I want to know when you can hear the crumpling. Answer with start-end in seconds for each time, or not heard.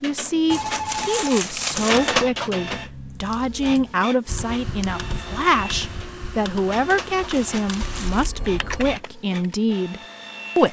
0.5-2.1, 7.3-8.3.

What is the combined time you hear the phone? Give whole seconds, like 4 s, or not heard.
3 s.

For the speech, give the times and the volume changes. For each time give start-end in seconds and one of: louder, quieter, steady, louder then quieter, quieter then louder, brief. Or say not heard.
0.0-10.6 steady.